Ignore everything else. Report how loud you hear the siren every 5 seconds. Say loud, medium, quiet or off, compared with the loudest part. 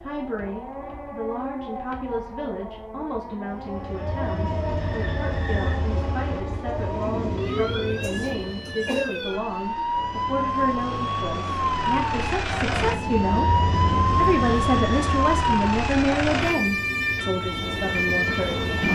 medium, medium, loud, loud.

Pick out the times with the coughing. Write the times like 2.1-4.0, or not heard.
8.0-9.2.